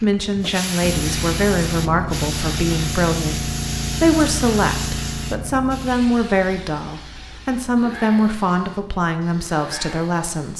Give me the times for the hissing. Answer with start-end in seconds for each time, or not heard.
0.0-10.5.